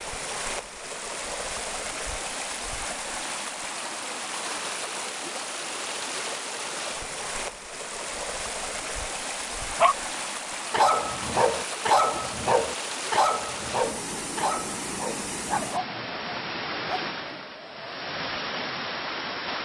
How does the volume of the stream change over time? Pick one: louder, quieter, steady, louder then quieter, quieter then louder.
steady.